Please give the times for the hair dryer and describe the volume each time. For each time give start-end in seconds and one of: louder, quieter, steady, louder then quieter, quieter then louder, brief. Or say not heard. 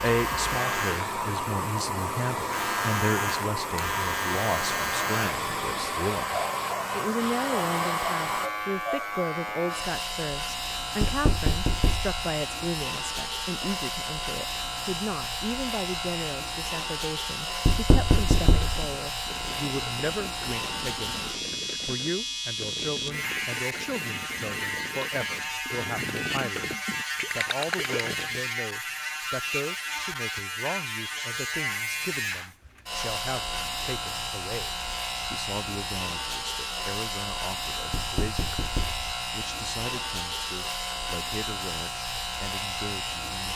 0.0-8.5 steady.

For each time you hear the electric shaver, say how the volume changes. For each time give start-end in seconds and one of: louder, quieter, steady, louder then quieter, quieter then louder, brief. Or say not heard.
0.0-43.5 steady.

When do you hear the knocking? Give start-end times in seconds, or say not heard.
11.0-12.2, 17.6-18.8, 37.9-39.0.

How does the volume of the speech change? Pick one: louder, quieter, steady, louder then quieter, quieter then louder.
quieter.